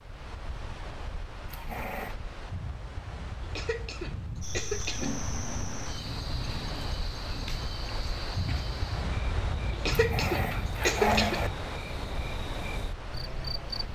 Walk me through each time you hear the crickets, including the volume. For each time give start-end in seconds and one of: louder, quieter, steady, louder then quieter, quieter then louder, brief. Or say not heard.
4.4-13.9 steady.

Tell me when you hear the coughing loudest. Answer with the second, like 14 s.
11 s.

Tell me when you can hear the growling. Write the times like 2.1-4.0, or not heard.
1.4-2.1, 4.8-7.5, 9.9-11.5.